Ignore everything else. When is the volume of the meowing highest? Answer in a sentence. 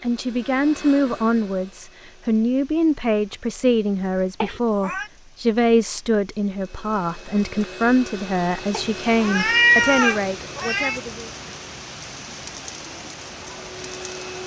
The volume of the meowing peaks at 10 seconds.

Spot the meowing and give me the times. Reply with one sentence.
The meowing can be heard from 4.4 to 5.0 s and from 8.7 to 11.0 s.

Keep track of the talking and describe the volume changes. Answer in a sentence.
The loudness of the talking stays about the same.